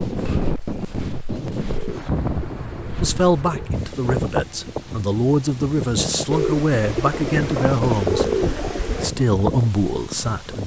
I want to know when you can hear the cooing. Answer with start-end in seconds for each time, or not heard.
1.8-3.8, 6.3-9.2.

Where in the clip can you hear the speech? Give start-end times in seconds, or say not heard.
3.0-10.6.